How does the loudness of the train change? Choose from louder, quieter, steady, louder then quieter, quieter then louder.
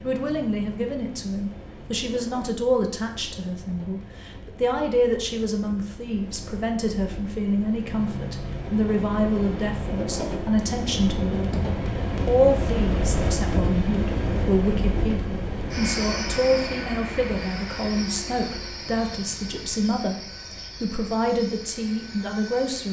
louder then quieter.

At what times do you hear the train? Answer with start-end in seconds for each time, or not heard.
0.0-22.8.